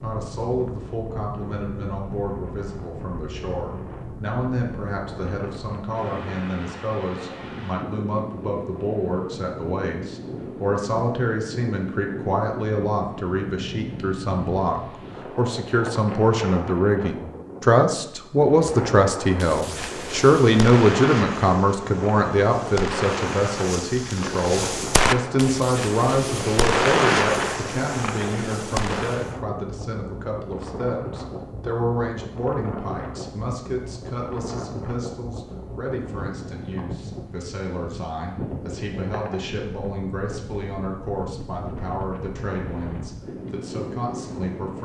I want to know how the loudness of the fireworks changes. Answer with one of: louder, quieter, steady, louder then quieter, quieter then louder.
louder.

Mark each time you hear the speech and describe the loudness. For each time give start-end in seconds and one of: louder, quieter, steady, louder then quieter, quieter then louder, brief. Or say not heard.
0.0-44.7 louder then quieter.